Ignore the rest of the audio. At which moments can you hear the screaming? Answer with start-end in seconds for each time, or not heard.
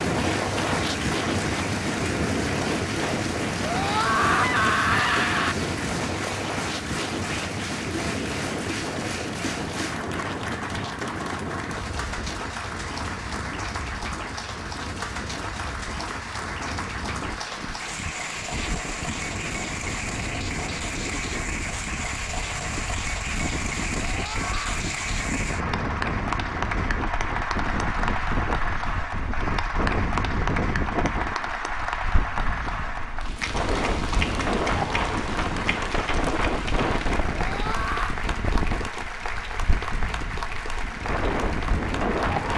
3.6-5.5, 24.1-24.9, 37.4-38.2.